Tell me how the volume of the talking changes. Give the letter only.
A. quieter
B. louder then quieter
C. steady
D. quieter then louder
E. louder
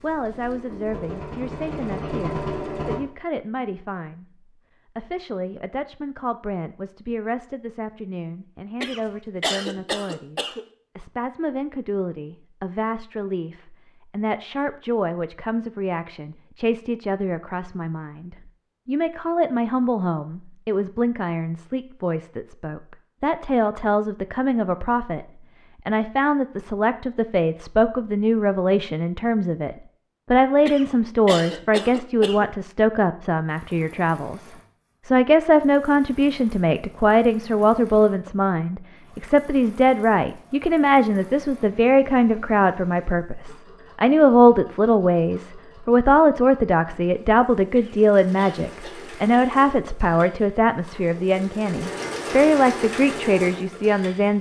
E.